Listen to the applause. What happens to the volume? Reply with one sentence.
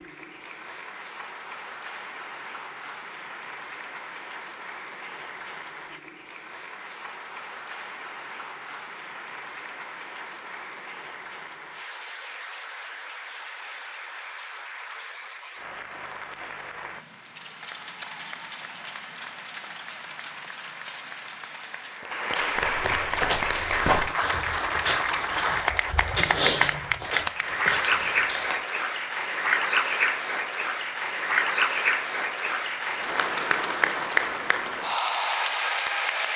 The loudness of the applause goes up.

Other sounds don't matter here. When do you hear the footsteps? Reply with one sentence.
The footsteps can be heard from 22.5 to 28.6 s.